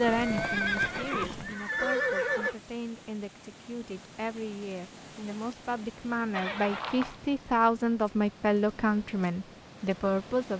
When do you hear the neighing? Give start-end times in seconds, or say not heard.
0.0-2.5, 6.3-7.2.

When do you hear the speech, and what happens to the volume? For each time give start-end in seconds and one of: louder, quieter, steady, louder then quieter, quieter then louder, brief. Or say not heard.
0.0-10.5 louder.